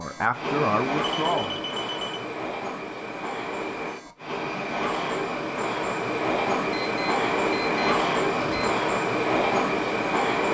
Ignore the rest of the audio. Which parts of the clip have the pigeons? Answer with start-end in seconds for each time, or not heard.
not heard.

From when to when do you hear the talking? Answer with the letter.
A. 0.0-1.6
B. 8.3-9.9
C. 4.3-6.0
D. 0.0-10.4
A.